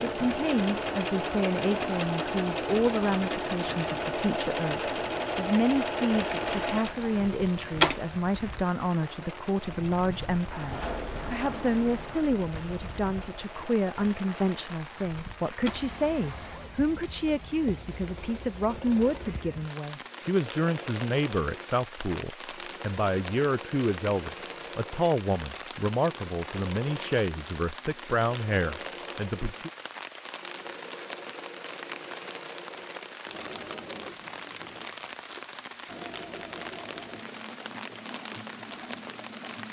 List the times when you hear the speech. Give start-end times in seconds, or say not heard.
0.0-29.7.